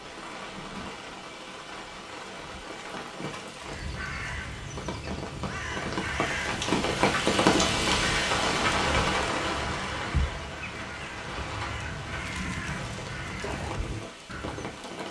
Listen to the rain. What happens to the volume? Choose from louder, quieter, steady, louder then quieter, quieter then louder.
louder then quieter.